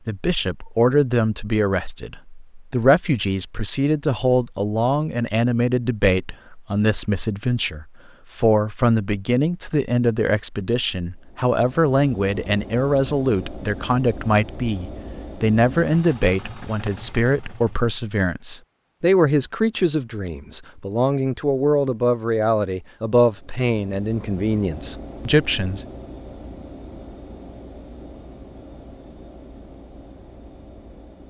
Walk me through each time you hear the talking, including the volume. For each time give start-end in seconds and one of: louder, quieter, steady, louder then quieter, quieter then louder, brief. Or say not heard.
0.1-25.9 steady.